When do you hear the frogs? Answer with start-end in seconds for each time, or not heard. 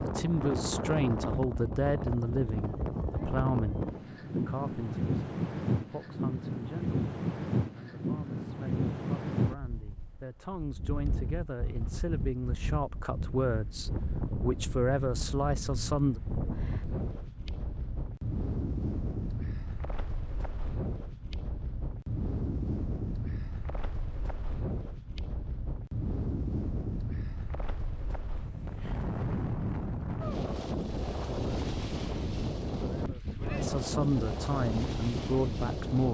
not heard.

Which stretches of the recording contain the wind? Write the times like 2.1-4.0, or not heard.
0.0-36.0.